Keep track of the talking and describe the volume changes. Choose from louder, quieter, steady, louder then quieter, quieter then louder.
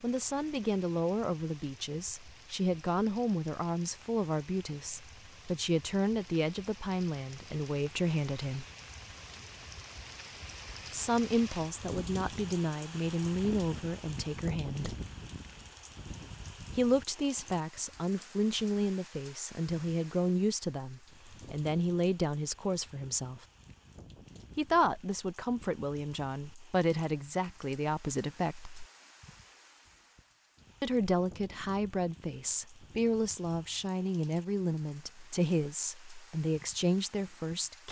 steady.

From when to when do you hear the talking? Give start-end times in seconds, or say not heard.
0.0-8.7, 10.9-14.9, 16.7-23.4, 24.6-28.9, 30.8-37.8.